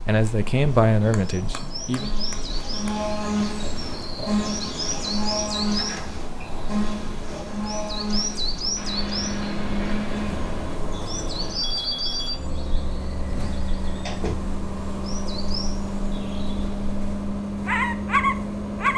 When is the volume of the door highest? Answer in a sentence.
The loudest moment of the door is at 14 seconds.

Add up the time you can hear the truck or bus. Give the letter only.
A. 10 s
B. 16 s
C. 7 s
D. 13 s
A.